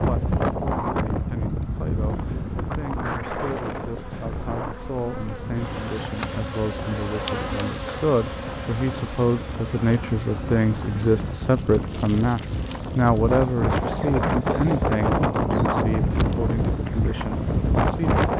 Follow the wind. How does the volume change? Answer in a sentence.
The loudness of the wind goes down, then up.